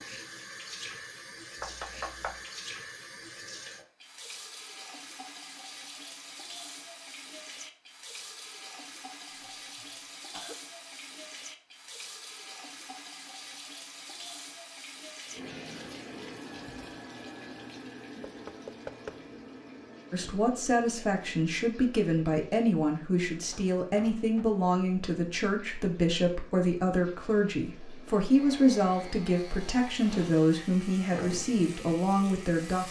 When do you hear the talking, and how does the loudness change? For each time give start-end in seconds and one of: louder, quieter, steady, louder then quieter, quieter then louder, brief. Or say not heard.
20.1-32.8 steady.